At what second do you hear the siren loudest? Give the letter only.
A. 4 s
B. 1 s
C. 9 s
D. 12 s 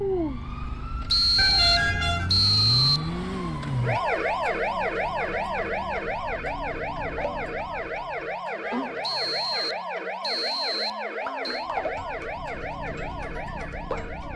A.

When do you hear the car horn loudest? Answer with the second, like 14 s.
2 s.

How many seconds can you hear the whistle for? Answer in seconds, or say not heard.
5 s.